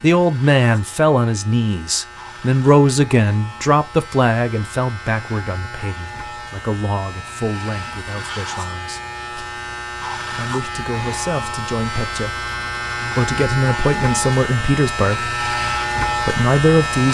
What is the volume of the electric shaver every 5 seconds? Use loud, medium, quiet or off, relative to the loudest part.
quiet, medium, loud, loud.